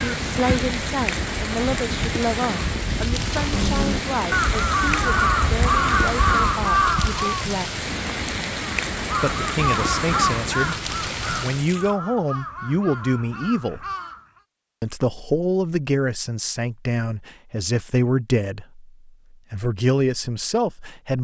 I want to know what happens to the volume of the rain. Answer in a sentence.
The loudness of the rain stays about the same.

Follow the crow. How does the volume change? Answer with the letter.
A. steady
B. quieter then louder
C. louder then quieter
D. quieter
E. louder
C.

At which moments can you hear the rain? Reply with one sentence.
You can hear the rain from 0.0 to 11.9 s.